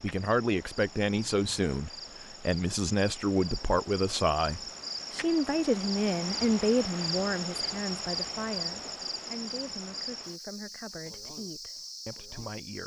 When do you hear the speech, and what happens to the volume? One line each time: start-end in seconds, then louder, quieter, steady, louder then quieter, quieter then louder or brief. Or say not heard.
0.0-12.8 quieter.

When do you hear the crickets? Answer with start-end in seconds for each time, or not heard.
0.0-12.8.